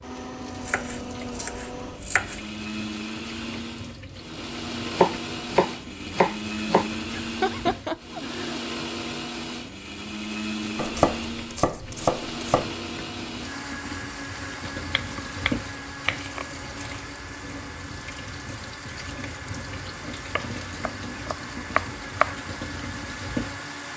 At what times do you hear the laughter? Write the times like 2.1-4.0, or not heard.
7.2-8.6.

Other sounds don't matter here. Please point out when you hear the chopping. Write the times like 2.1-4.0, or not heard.
0.6-2.5, 4.9-6.9, 10.8-12.7, 14.8-17.1, 20.4-22.4.